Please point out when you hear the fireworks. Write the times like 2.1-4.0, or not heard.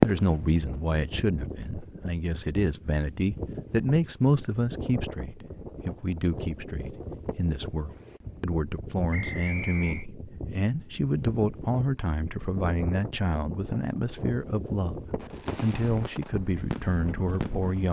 0.0-1.0, 15.2-17.7.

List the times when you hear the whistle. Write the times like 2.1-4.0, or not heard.
9.1-10.1.